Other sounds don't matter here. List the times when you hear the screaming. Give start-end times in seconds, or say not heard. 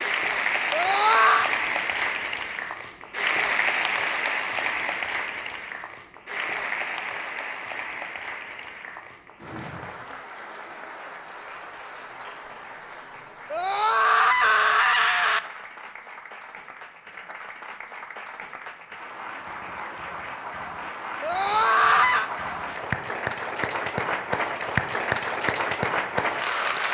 0.7-1.5, 13.5-15.4, 21.2-22.3.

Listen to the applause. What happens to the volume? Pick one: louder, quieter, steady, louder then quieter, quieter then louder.
quieter then louder.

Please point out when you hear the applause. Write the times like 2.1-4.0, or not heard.
0.0-26.8.